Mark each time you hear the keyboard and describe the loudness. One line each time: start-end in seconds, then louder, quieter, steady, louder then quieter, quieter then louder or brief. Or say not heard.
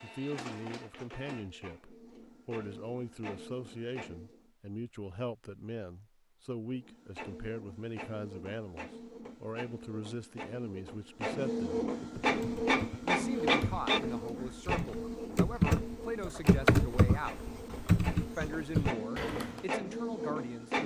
12.0-19.6 louder.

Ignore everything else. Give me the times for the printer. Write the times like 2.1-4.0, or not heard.
0.0-4.5, 6.7-20.8.